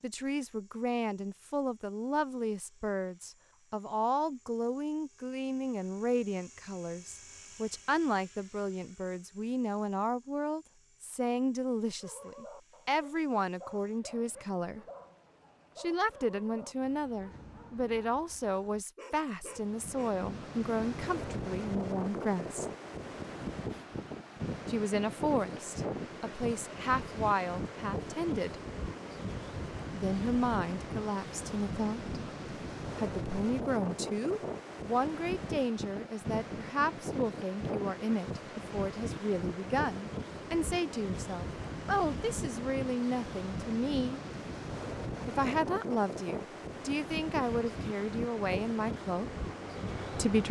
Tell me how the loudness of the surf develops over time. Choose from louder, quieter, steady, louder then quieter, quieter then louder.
steady.